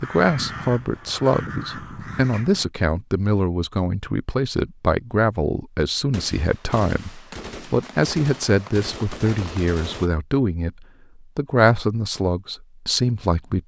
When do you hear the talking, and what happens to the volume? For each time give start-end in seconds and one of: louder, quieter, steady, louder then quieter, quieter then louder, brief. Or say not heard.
0.0-13.6 steady.